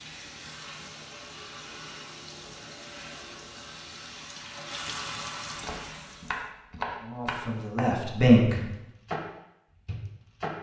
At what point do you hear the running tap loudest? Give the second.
5 s.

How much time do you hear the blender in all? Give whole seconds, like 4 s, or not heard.
not heard.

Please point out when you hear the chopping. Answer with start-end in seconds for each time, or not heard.
5.6-7.8, 8.6-9.2, 9.8-10.5.